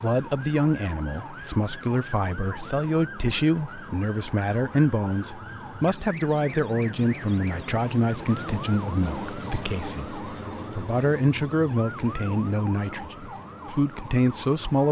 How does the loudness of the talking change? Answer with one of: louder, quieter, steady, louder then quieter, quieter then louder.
steady.